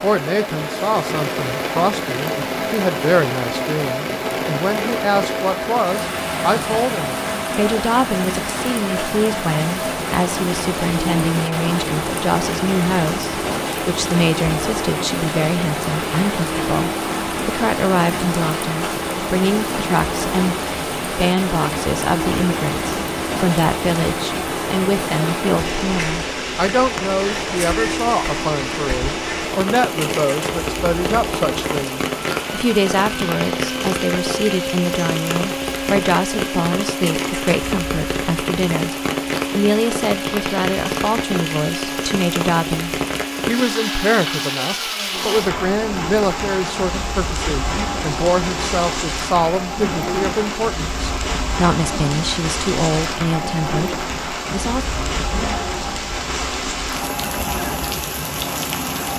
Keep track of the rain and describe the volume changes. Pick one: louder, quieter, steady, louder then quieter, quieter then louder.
steady.